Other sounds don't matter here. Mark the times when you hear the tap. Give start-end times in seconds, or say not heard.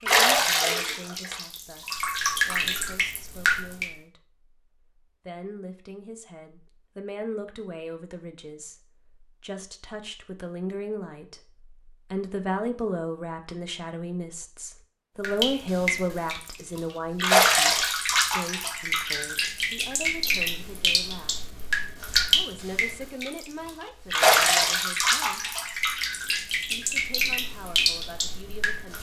0.1-3.9, 15.2-28.9.